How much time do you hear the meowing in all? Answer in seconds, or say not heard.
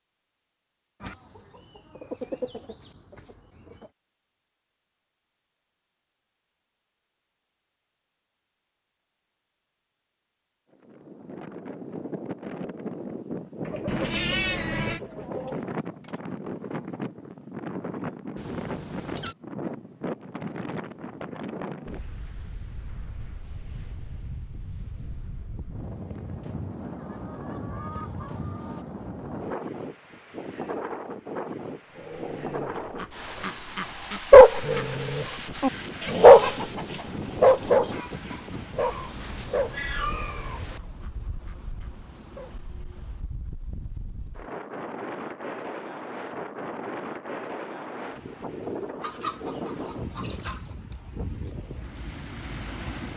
4 s.